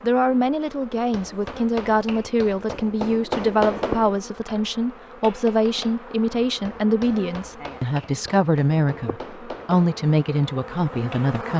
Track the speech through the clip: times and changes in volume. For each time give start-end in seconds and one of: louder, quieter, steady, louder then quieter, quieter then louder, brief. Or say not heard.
0.0-11.5 steady.